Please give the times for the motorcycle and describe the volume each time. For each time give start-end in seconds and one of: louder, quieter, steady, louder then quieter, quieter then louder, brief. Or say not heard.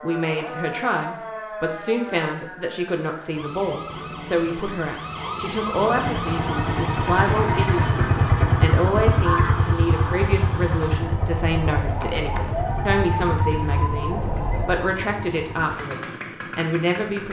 6.0-17.2 quieter.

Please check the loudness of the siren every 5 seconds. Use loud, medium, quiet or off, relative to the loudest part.
medium, loud, loud, off.